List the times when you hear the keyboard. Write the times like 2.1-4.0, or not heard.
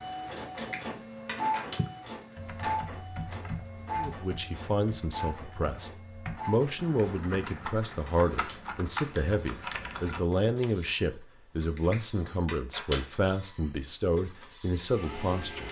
1.8-10.7.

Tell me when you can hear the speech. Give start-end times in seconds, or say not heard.
4.0-15.6.